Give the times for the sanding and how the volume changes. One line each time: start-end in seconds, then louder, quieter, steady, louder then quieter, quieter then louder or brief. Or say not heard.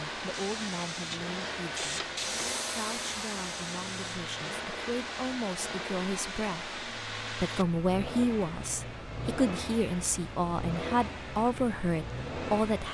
not heard.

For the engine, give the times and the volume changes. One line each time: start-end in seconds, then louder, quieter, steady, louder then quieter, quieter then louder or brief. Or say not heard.
0.0-12.9 steady.